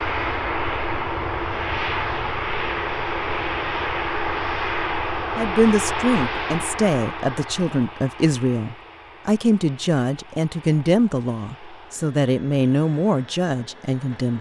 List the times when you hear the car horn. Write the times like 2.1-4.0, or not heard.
not heard.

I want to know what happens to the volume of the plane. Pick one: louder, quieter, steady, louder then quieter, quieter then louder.
quieter.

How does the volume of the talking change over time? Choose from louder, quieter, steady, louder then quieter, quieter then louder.
steady.